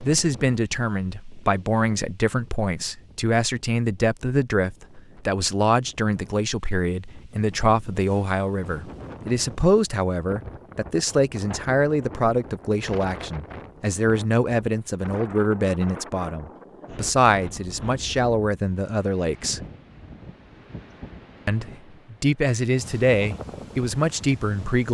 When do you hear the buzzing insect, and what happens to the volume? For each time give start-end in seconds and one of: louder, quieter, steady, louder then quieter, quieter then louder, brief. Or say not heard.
not heard.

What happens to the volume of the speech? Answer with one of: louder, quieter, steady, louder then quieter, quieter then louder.
steady.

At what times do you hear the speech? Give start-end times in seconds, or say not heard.
0.0-19.6, 21.4-24.8.